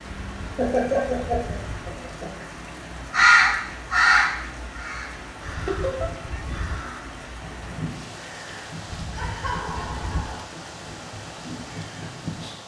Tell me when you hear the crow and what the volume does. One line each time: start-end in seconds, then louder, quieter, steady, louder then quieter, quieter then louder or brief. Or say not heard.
3.1-12.6 quieter.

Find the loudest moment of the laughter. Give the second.
1 s.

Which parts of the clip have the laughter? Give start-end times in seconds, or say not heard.
0.6-2.3, 5.7-6.1, 9.2-10.4.